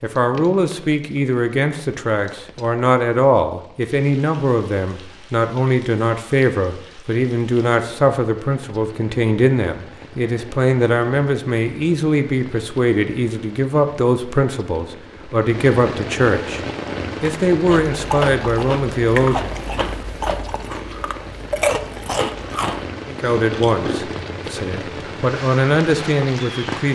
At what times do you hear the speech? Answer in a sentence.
The speech can be heard from 0.0 to 16.6 s, from 17.2 to 19.6 s and from 23.1 to 26.8 s.